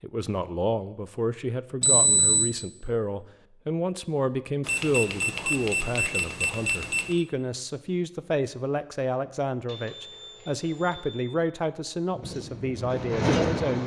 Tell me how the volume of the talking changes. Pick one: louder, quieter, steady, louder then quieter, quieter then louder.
steady.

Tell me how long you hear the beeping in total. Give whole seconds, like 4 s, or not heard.
5 s.